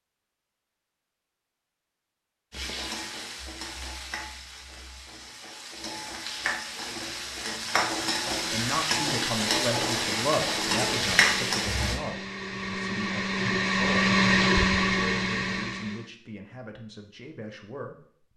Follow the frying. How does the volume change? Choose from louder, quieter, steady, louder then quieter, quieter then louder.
louder.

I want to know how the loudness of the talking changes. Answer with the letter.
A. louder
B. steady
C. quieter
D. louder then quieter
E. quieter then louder
C.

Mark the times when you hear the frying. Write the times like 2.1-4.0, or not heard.
2.5-12.0.